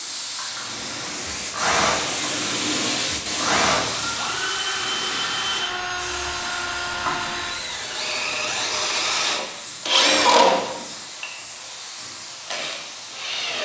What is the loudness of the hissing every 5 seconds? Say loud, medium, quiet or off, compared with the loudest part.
loud, medium, medium.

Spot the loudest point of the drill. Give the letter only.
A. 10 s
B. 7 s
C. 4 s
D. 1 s
A.